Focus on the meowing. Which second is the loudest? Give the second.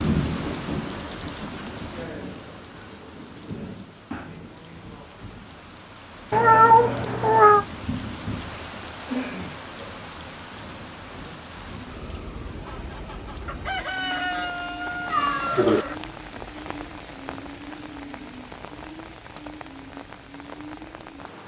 7 s.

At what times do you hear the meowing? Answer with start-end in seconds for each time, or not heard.
6.3-7.7, 15.1-15.8.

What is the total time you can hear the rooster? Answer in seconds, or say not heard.
3 s.